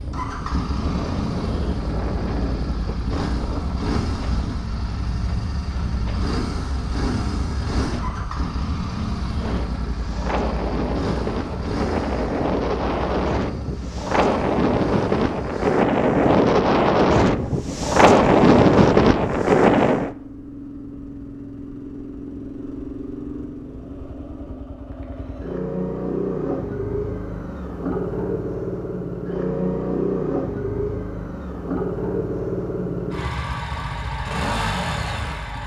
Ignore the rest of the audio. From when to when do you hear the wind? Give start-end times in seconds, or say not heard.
0.0-20.1.